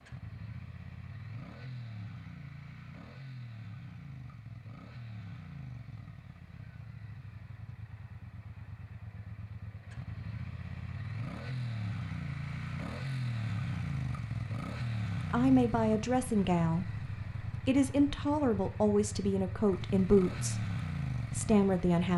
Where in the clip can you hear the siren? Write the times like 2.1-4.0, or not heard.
not heard.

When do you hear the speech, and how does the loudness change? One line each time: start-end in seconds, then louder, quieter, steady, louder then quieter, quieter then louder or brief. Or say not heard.
15.3-22.1 steady.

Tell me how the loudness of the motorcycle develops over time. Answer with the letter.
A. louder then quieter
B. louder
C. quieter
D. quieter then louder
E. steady
B.